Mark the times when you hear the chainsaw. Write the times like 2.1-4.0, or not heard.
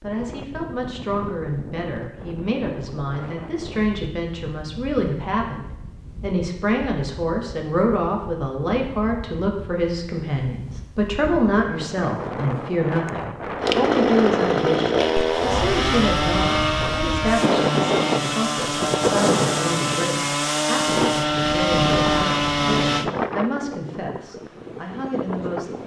13.6-23.1.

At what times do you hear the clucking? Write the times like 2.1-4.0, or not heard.
not heard.